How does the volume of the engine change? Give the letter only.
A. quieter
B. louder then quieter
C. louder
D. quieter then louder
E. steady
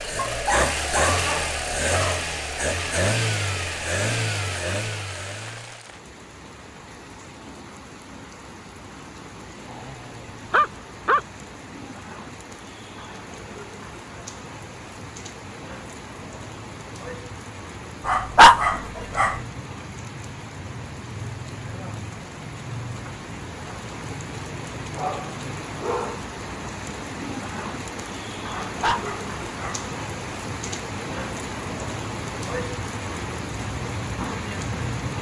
A.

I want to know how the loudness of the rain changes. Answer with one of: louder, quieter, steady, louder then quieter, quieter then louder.
louder.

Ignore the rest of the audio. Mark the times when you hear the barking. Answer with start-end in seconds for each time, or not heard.
0.1-2.2, 9.7-11.2, 18.1-19.4, 24.9-26.2, 28.5-29.9.